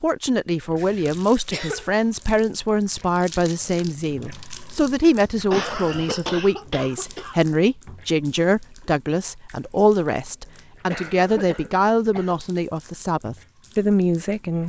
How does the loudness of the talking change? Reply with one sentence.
The volume of the talking stays about the same.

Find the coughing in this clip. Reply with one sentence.
You can hear the coughing from 0.8 to 1.9 s, from 5.5 to 7.4 s and from 10.4 to 12.4 s.